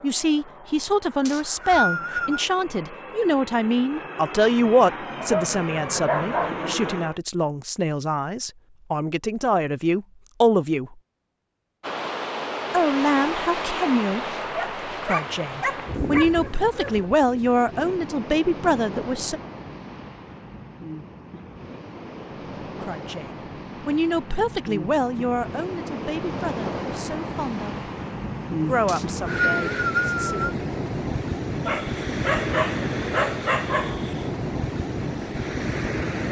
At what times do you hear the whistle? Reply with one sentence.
You can hear the whistle from 1.2 to 2.5 s and from 28.9 to 30.6 s.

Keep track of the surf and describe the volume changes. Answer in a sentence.
The loudness of the surf goes down, then up.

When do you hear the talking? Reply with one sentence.
You can hear the talking from 0.0 to 10.9 s, from 12.7 to 14.2 s, from 15.0 to 19.4 s, from 22.6 to 27.9 s and from 28.6 to 30.5 s.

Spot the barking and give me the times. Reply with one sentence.
The barking can be heard from 5.2 to 6.7 s, from 14.4 to 17.1 s and from 31.6 to 34.2 s.